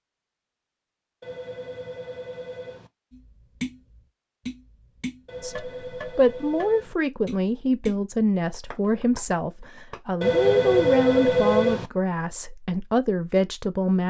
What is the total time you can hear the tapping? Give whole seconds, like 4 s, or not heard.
7 s.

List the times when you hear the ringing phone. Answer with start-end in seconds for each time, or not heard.
1.2-2.9, 5.2-7.0, 10.2-11.9.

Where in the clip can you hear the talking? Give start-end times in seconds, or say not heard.
5.4-14.0.